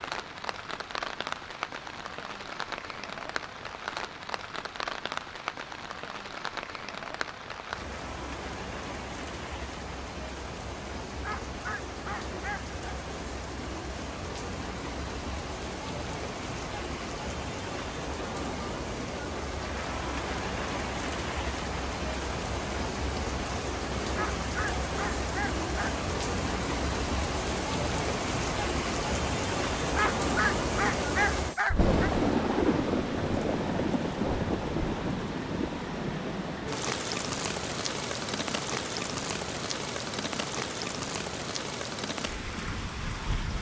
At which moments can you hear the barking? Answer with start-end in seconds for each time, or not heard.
11.2-12.8, 24.1-25.9, 29.9-32.1.